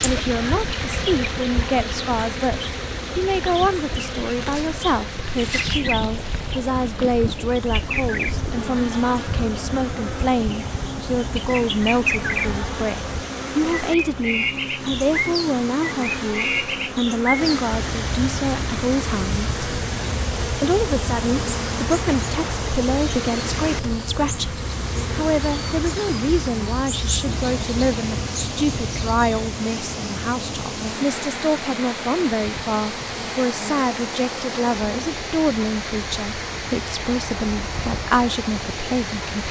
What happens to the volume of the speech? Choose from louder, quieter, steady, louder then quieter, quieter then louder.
steady.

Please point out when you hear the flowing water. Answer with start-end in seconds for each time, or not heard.
0.0-39.4.